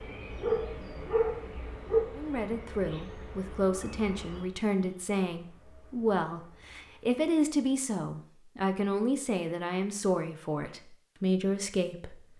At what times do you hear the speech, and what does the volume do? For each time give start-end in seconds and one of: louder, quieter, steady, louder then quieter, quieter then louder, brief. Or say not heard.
2.1-12.3 steady.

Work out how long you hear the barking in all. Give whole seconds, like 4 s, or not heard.
2 s.